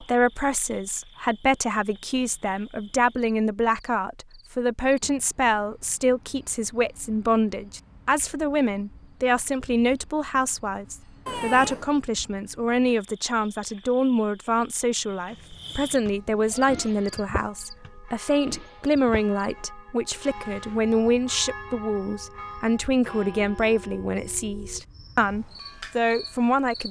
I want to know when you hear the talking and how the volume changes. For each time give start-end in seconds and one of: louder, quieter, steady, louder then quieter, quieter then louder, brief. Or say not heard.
0.0-26.8 steady.